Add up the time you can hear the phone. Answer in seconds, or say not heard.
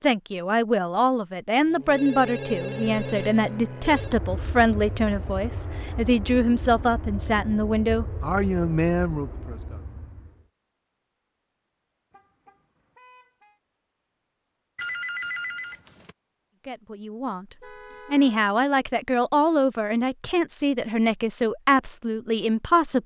4 s.